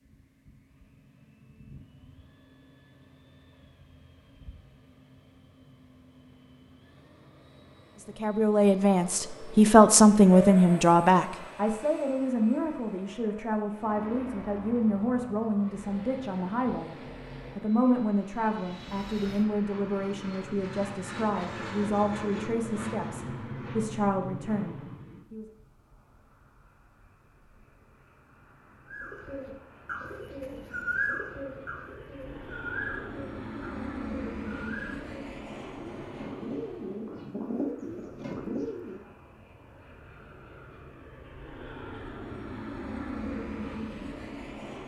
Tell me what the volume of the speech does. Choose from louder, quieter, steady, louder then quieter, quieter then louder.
quieter.